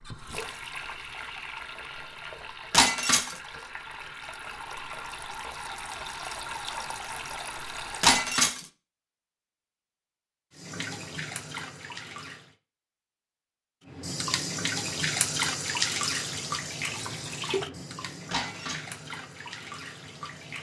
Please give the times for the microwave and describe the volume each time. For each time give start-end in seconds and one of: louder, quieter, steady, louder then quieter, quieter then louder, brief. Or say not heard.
not heard.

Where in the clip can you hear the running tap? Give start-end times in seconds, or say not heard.
0.0-8.4, 10.5-12.6, 13.8-20.5.